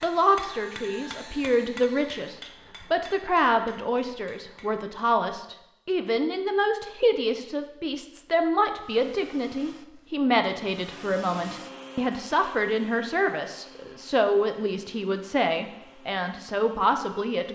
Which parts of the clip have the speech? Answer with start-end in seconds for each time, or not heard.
0.0-17.5.